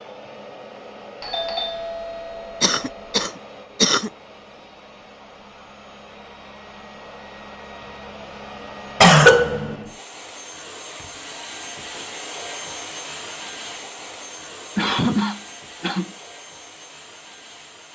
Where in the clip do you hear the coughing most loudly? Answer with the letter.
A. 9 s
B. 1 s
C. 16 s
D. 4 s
A.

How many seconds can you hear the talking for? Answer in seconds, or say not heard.
not heard.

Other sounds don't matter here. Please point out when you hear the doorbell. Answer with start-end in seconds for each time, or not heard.
1.2-3.2.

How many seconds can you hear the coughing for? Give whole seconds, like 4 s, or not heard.
4 s.